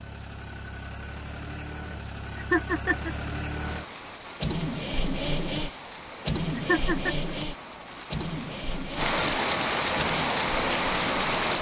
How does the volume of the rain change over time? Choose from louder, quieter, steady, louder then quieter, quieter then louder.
louder.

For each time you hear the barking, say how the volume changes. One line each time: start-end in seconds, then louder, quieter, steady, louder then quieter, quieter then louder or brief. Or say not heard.
not heard.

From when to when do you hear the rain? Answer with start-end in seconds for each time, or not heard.
3.5-11.5.